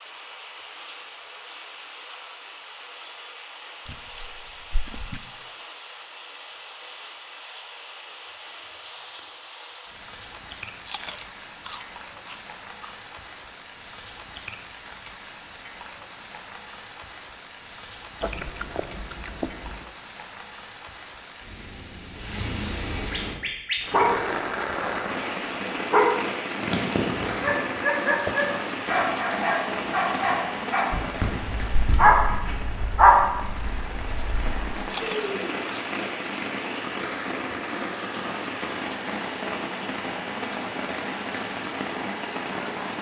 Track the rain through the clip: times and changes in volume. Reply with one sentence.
You can hear the rain from 0.0 to 42.9 s, getting louder.